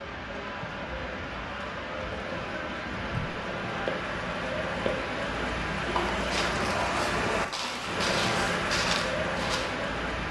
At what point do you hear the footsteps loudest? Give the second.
9 s.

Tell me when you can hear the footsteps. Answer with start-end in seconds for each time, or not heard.
3.1-9.8.